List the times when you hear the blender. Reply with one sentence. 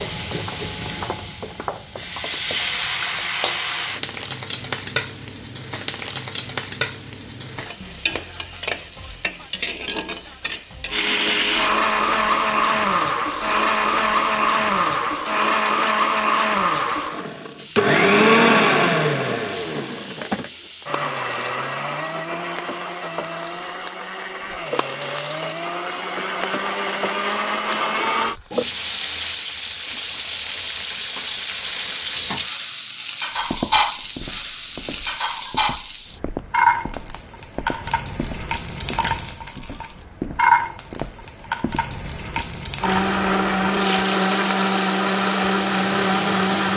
You can hear the blender from 10.9 to 28.4 s and from 42.8 to 46.7 s.